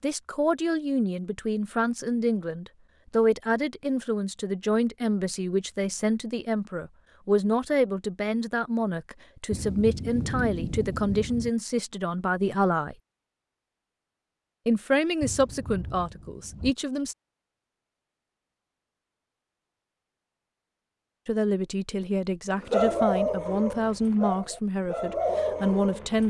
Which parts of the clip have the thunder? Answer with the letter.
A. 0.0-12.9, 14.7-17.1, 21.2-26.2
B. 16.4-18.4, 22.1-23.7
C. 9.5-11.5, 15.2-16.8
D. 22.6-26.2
C.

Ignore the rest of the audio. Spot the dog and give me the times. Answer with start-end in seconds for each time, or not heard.
22.6-26.2.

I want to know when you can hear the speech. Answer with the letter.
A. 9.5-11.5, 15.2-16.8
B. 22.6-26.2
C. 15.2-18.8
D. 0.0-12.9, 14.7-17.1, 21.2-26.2
D.